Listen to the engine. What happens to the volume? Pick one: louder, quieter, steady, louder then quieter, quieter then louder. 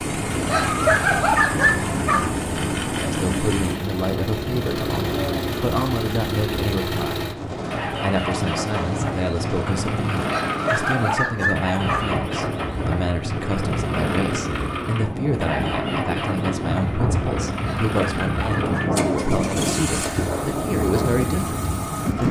steady.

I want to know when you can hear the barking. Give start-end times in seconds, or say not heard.
0.5-2.3, 10.3-12.2, 17.6-18.9.